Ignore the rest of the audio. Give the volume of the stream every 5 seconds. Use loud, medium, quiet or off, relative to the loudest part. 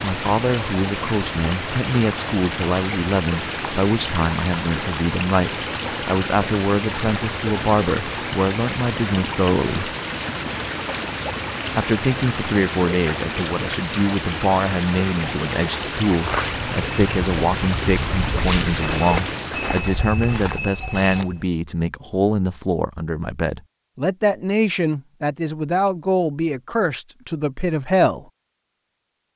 loud, loud, loud, loud, off, off.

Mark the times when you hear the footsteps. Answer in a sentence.
You can hear the footsteps from 16.1 to 21.5 s.